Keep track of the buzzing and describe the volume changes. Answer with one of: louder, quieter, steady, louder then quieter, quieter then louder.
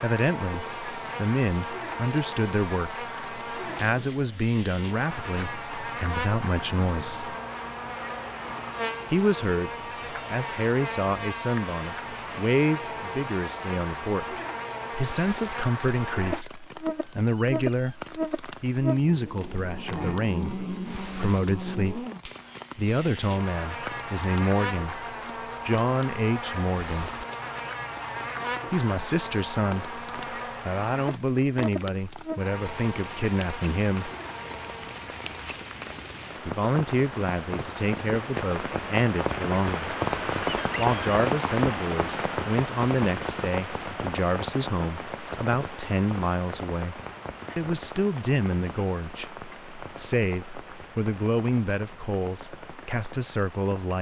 steady.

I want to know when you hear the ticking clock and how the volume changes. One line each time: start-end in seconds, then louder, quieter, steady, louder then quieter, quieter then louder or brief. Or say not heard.
not heard.